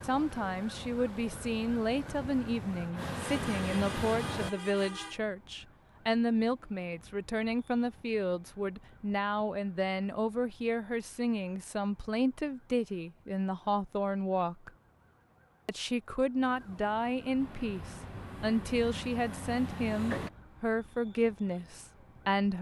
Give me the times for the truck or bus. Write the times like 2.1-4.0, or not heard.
0.0-4.5, 17.4-20.3.